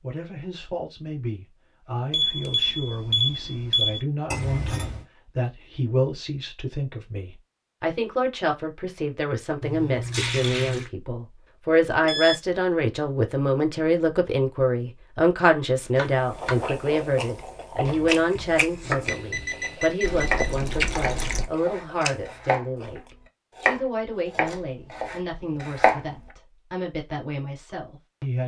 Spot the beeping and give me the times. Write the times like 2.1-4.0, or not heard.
2.1-4.0, 12.0-12.4, 19.1-20.6.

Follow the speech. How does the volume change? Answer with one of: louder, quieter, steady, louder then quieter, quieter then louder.
louder then quieter.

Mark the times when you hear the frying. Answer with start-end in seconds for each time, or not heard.
not heard.